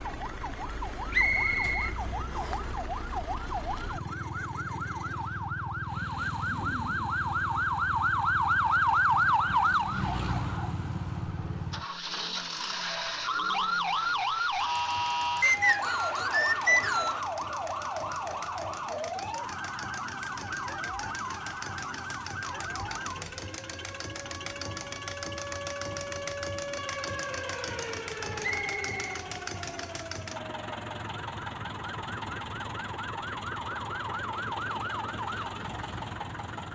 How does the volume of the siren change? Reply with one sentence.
The loudness of the siren goes up, then down.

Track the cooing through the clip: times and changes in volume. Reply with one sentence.
You can't hear the cooing here.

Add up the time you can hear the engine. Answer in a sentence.
You can hear the engine for 37 seconds altogether.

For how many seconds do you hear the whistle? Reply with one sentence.
The whistle can be heard for 4 seconds in total.